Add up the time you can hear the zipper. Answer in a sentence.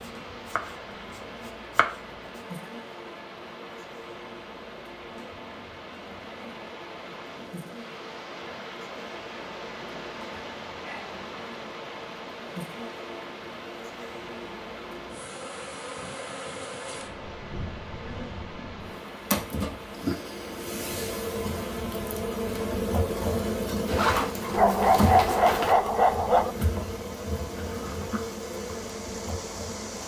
The zipper can be heard for 2 seconds in total.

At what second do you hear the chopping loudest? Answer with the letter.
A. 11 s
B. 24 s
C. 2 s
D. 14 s
C.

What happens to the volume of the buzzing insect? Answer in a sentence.
The loudness of the buzzing insect goes up.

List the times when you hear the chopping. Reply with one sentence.
You can hear the chopping from 0.0 to 2.4 s.